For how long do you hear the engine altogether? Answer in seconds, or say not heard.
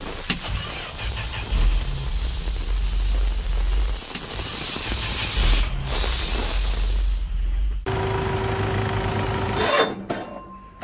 11 s.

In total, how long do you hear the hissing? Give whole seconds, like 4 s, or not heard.
7 s.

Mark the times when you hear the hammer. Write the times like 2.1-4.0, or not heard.
not heard.